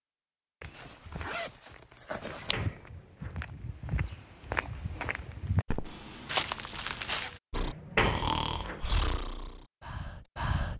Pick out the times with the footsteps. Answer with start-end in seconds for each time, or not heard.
0.6-7.4.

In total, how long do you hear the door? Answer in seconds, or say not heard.
2 s.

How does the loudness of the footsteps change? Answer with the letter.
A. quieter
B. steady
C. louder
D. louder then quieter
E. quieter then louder
C.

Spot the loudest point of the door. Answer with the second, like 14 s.
8 s.